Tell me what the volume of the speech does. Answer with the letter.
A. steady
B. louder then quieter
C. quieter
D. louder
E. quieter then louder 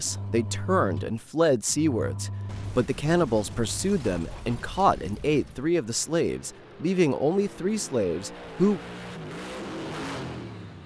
A.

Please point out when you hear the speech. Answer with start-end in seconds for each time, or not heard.
0.0-8.8.